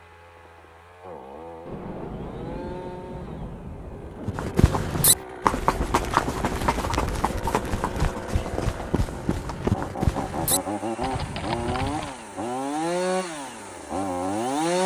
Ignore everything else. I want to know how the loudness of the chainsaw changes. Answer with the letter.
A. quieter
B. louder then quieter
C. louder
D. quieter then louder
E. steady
C.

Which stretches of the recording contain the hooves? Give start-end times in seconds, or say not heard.
4.2-12.2.